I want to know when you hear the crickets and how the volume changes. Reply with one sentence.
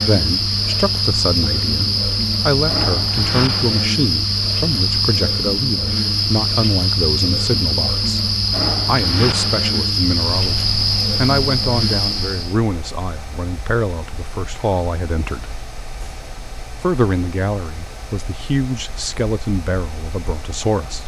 The crickets can be heard from 0.0 to 12.6 s, at a steady volume.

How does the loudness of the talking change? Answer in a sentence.
The volume of the talking stays about the same.